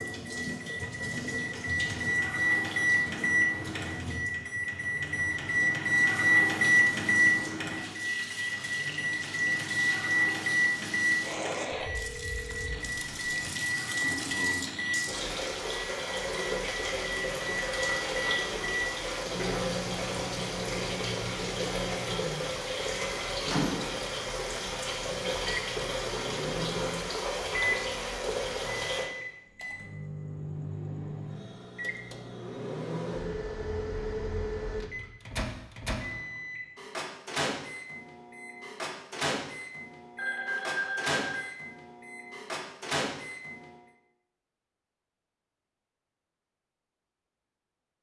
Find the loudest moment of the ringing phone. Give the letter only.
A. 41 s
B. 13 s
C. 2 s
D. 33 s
A.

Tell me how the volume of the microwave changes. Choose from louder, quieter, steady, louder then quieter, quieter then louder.
quieter.